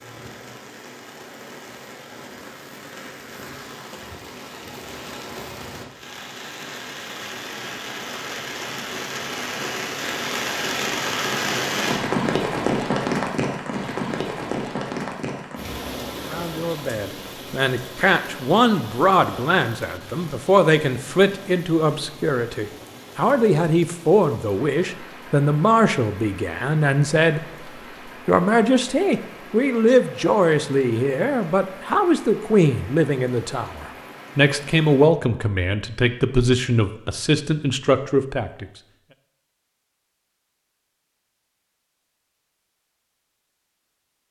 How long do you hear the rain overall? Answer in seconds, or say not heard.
35 s.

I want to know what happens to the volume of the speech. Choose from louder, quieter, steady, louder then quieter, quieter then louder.
steady.